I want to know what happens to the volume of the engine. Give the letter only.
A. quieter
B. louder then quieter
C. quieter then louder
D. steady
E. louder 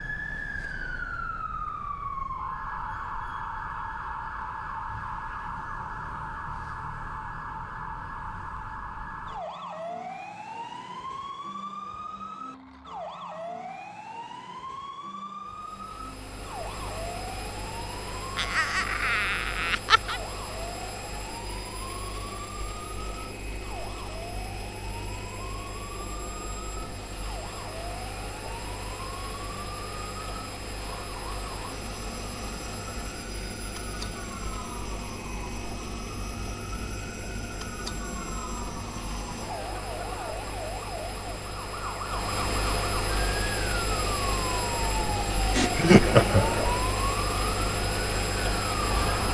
E.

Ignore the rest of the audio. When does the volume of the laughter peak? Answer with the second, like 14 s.
46 s.